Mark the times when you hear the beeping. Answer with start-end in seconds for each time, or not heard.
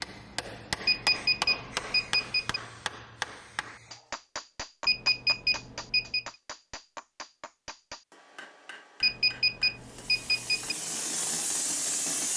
0.8-2.6, 4.8-6.2, 9.0-10.8.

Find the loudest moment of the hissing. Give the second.
12 s.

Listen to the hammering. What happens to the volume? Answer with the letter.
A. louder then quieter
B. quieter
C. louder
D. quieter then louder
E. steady
B.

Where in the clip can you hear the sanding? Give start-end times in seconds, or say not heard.
not heard.